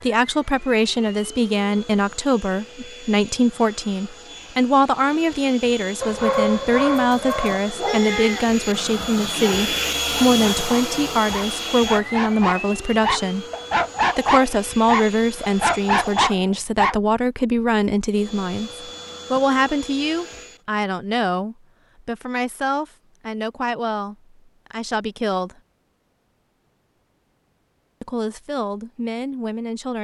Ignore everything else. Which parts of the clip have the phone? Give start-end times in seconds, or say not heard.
not heard.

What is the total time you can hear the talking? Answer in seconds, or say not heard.
27 s.